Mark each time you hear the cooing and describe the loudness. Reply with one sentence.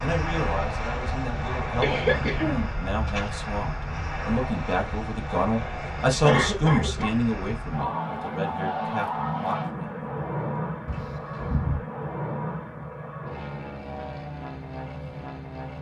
The cooing can't be heard in this clip.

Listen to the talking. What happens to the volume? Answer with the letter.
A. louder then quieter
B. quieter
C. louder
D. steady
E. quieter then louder
A.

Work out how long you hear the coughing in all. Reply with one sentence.
The coughing can be heard for 4 seconds in total.